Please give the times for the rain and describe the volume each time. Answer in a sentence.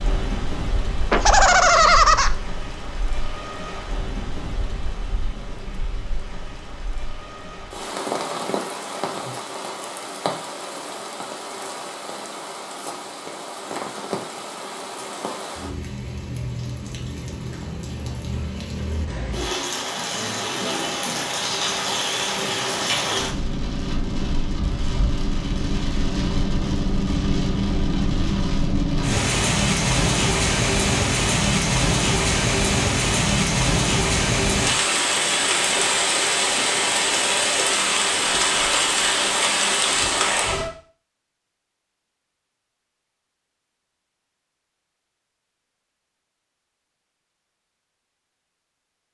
You can hear the rain from 0.0 to 40.7 s, getting louder.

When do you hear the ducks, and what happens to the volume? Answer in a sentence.
You can't hear the ducks here.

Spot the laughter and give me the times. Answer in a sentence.
You can hear the laughter from 1.1 to 2.3 s.